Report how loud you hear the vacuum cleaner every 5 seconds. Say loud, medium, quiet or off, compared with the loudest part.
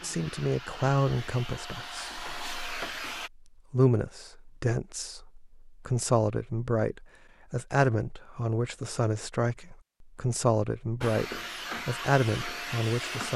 loud, off, loud.